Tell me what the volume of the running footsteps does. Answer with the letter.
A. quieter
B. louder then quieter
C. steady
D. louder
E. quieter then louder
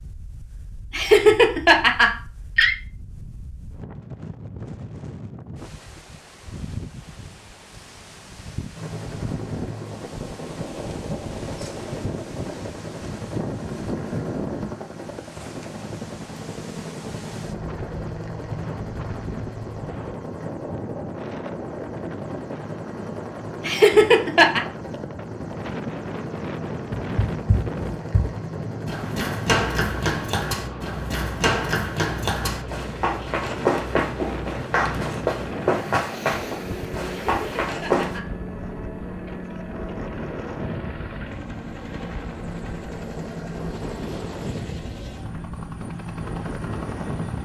C.